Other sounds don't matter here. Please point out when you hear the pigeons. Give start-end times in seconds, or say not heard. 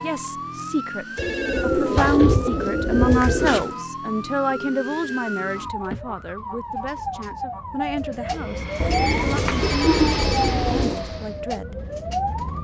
1.1-3.8, 8.8-11.0.